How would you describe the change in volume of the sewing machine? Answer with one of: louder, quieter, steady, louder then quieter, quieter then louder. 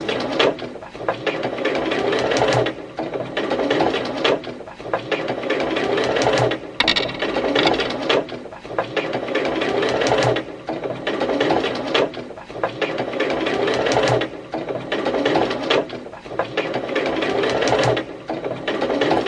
steady.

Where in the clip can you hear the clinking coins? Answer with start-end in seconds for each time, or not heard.
6.8-7.9.